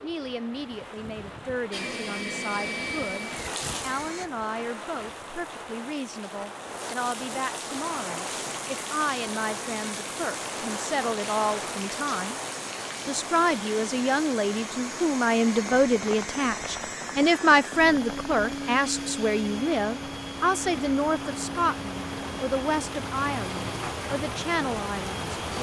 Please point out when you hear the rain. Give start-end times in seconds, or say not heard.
0.0-25.5.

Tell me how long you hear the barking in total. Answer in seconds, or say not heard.
not heard.